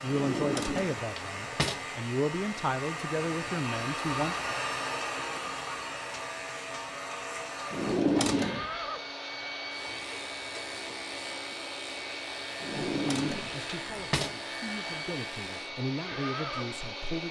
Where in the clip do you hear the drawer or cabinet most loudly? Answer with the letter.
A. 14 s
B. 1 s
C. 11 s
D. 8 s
D.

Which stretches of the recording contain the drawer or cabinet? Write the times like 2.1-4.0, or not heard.
0.1-1.8, 7.7-8.7, 12.6-14.3.